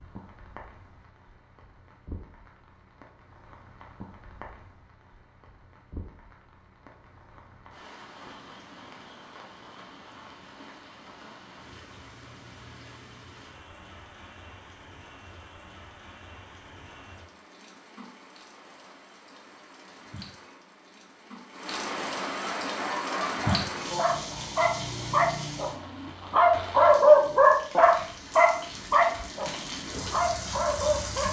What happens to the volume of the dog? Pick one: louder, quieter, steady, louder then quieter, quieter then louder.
louder then quieter.